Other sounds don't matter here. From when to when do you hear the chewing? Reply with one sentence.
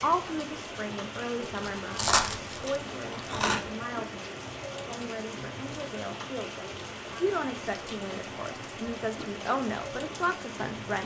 The chewing can be heard from 1.6 to 3.6 s.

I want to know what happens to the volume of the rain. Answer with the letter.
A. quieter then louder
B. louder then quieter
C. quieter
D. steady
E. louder
D.